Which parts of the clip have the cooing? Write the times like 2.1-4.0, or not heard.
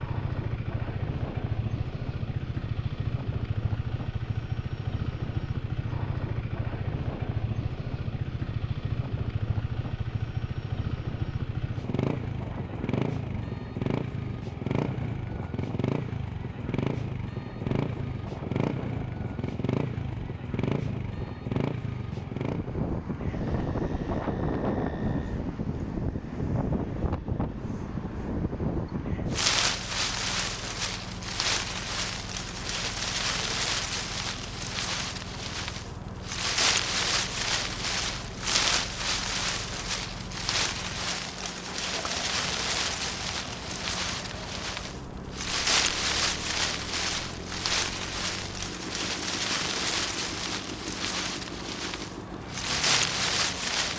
not heard.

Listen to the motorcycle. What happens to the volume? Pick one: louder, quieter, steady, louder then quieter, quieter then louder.
quieter.